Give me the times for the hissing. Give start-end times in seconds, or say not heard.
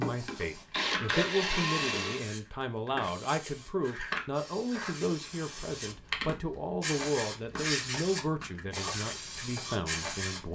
0.0-10.5.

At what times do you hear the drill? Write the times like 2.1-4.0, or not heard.
0.0-2.2.